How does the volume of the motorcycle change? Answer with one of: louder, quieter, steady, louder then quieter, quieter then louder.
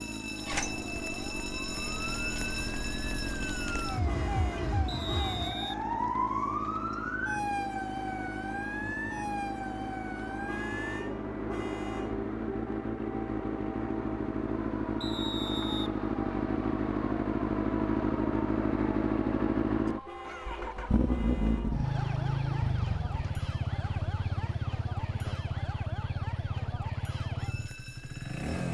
louder then quieter.